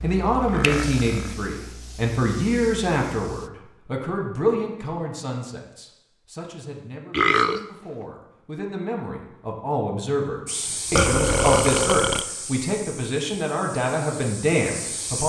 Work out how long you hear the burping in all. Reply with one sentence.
You can hear the burping for 3 seconds altogether.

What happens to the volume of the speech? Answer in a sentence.
The loudness of the speech goes down, then up.